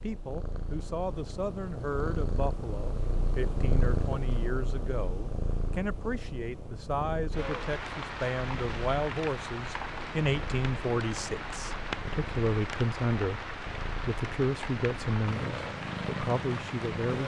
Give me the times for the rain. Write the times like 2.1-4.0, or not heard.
7.3-17.2.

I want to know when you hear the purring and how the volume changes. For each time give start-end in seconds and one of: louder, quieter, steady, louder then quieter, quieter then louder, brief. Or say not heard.
0.0-17.2 quieter then louder.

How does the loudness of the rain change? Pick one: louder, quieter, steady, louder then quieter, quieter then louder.
steady.